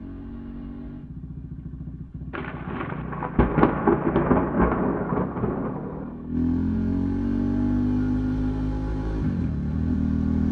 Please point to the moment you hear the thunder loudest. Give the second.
4 s.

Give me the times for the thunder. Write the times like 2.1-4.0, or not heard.
2.3-6.2.